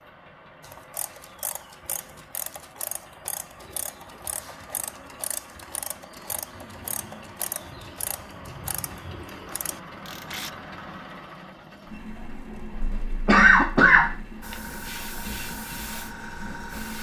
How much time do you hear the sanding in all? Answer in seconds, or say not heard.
not heard.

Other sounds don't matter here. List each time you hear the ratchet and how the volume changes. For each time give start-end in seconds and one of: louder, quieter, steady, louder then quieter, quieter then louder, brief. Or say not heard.
0.6-10.5 steady.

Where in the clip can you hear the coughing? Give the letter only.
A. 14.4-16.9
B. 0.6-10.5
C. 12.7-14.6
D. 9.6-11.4
C.